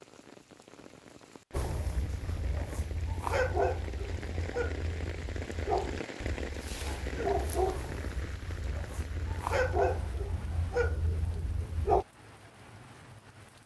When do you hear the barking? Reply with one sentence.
The barking can be heard from 1.5 to 12.1 s.